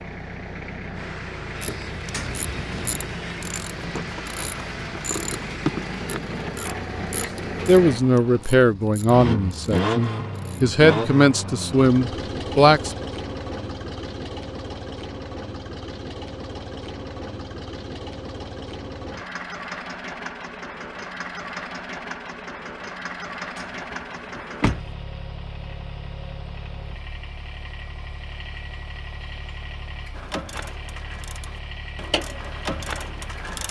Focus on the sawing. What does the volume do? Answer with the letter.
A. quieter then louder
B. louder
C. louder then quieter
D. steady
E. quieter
D.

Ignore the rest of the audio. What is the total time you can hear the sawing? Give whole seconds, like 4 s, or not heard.
5 s.